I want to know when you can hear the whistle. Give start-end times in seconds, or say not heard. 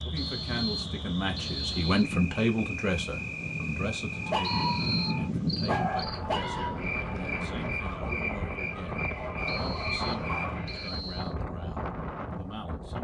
0.1-2.1, 4.4-5.2, 9.4-11.3.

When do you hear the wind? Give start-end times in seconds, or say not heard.
0.0-12.9.